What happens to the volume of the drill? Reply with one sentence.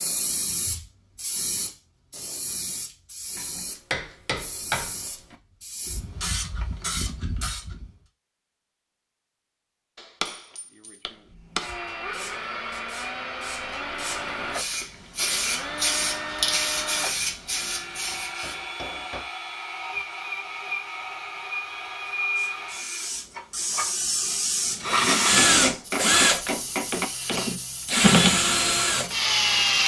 The volume of the drill goes up.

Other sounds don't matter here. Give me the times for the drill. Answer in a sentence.
The drill can be heard from 11.2 to 29.8 s.